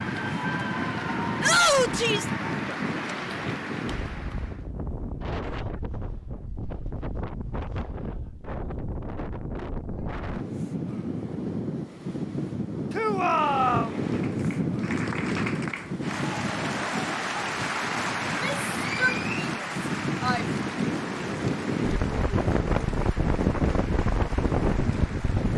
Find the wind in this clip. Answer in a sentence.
You can hear the wind from 0.0 to 25.5 s.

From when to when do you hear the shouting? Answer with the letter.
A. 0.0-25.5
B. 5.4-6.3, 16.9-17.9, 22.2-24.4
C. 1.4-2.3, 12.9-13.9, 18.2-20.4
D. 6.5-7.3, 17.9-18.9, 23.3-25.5
C.